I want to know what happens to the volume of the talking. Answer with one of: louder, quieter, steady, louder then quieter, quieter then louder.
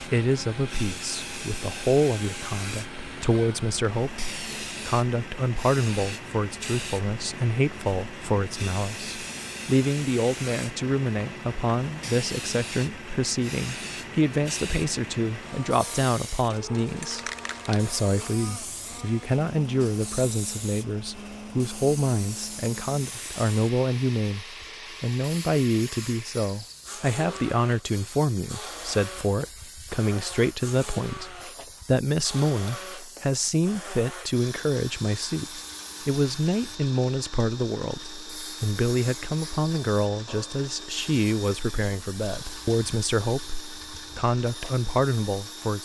steady.